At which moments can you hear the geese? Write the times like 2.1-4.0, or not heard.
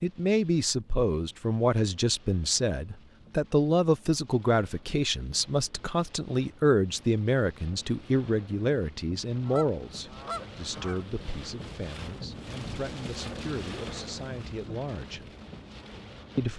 9.4-11.1.